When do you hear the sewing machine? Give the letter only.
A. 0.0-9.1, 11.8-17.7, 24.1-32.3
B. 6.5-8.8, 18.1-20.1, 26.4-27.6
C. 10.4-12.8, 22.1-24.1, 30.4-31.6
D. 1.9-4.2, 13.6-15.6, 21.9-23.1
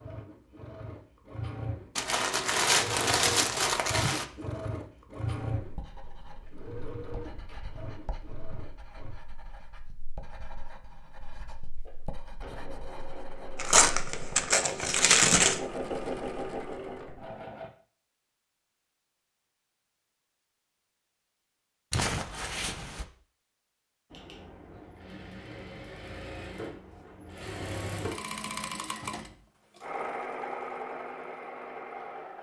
A.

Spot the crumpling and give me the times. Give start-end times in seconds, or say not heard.
1.9-4.2, 13.6-15.6, 21.9-23.1.